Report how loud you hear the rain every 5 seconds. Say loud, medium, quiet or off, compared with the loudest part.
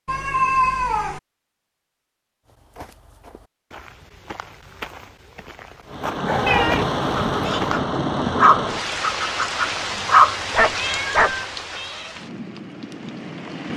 off, loud, medium.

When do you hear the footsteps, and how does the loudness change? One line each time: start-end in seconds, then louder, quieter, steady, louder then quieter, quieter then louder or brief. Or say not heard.
2.5-7.8 louder.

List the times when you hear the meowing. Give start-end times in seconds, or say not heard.
0.1-1.2, 6.5-7.6, 10.7-12.2.